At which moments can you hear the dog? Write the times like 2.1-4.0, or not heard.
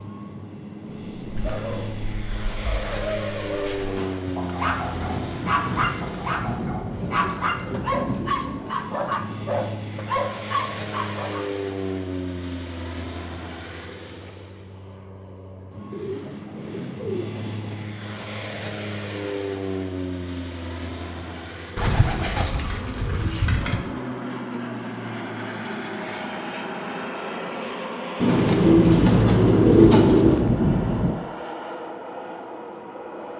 1.1-11.4.